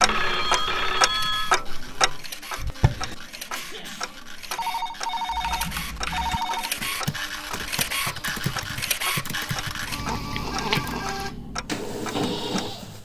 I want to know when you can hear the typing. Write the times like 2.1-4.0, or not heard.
5.2-10.9.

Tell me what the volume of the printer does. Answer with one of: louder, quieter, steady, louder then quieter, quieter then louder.
louder.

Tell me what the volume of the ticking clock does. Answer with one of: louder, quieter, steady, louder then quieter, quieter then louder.
quieter.